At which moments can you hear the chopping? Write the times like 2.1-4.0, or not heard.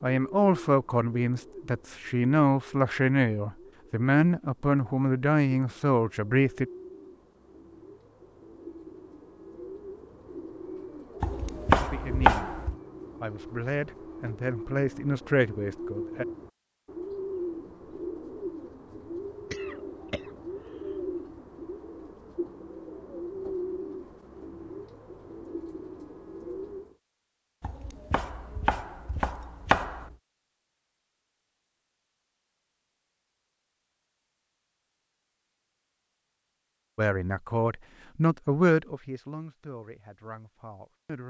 11.2-12.8, 27.6-30.1.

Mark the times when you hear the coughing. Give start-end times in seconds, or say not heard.
19.5-21.1.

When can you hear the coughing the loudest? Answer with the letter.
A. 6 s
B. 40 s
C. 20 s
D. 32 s
C.